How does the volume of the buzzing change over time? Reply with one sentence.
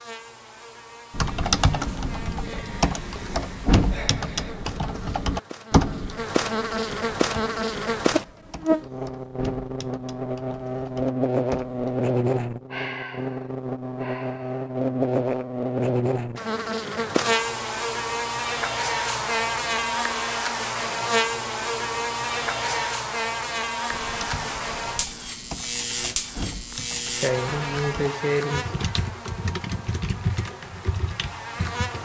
The volume of the buzzing goes up, then down.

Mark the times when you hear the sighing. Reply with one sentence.
The sighing can be heard from 2.4 to 4.7 s, from 12.7 to 14.7 s and from 26.7 to 28.8 s.